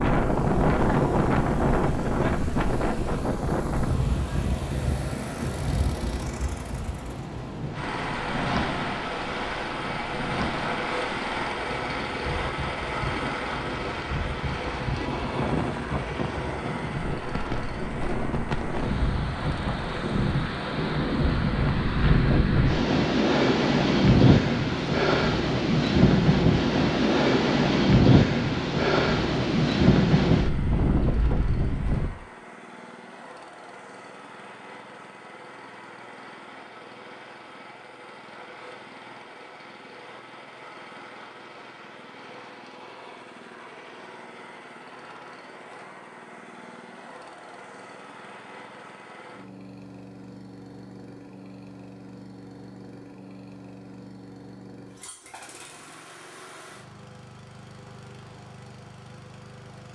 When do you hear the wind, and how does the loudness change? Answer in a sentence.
The wind can be heard from 0.0 to 32.1 s, getting quieter then louder.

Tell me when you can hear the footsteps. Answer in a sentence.
You can't hear the footsteps here.